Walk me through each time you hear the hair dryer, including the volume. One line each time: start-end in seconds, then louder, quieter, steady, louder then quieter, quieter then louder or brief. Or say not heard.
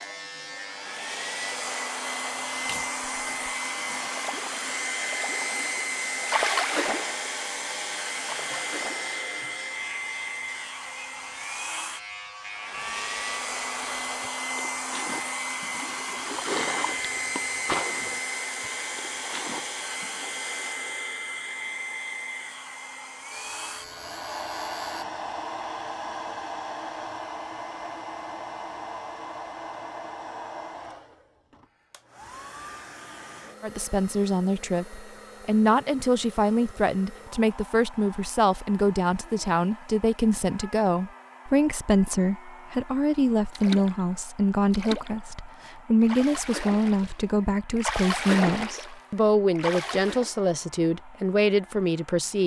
0.0-52.4 quieter.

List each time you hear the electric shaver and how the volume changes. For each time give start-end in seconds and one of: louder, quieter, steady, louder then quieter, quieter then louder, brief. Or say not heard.
0.0-14.3 steady
23.3-25.1 brief.